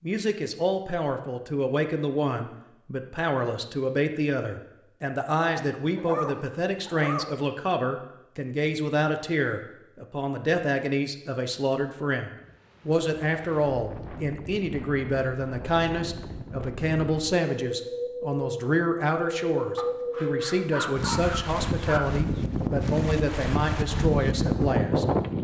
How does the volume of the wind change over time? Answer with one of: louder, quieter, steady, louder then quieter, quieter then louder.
louder.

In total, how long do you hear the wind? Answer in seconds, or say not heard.
13 s.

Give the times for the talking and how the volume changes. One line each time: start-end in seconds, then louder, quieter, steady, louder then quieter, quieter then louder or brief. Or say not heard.
0.0-25.3 steady.